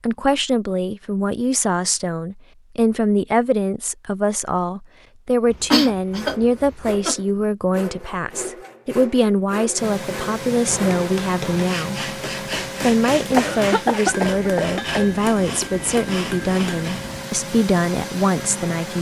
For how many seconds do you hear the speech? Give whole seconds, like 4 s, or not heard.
18 s.